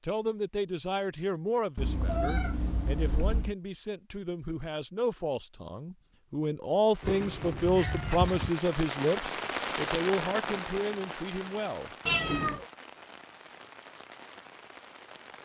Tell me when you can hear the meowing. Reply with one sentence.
The meowing can be heard from 1.8 to 3.5 s, from 7.0 to 8.5 s and from 12.1 to 12.7 s.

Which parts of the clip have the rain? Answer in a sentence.
The rain can be heard from 6.9 to 15.4 s.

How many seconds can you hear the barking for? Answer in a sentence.
You can't hear the barking here.